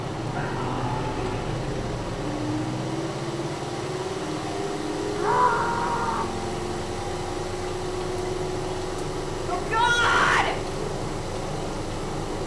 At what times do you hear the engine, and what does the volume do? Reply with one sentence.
You can hear the engine from 0.0 to 12.4 s, at a steady volume.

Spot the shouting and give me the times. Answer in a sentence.
You can hear the shouting from 0.3 to 1.6 s, from 5.2 to 6.3 s and from 9.4 to 10.6 s.